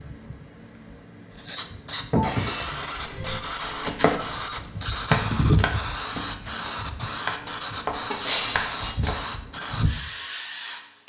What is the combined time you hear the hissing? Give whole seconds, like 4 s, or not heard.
11 s.